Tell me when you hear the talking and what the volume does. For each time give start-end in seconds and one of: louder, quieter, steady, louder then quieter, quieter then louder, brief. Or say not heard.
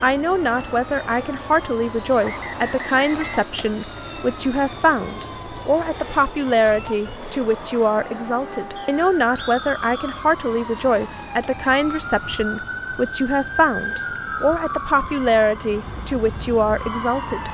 0.0-17.4 steady.